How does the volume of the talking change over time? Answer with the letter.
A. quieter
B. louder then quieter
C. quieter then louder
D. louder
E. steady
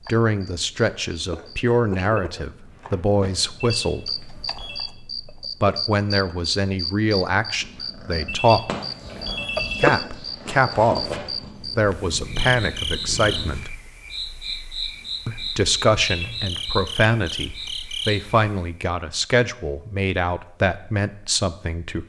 E.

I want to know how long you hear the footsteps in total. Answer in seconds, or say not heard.
not heard.